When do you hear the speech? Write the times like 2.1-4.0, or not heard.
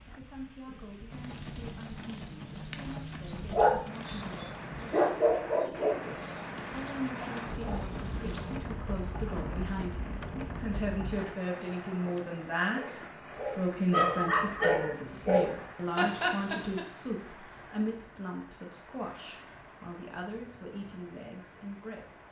0.0-22.2.